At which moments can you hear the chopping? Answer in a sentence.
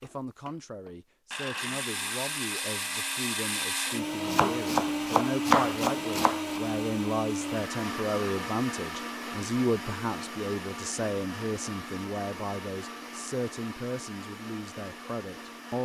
You can hear the chopping from 4.2 to 6.6 s.